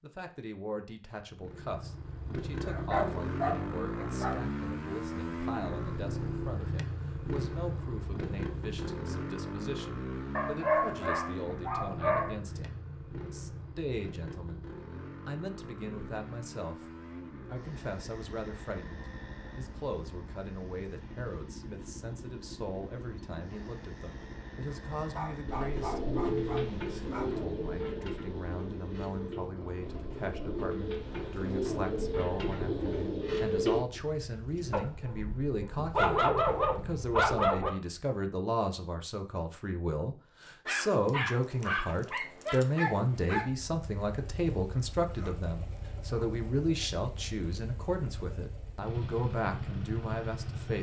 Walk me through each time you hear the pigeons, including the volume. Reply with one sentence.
The pigeons can be heard from 25.4 to 34.8 s, getting quieter then louder.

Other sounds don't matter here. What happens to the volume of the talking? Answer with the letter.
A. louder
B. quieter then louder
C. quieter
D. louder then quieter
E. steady
A.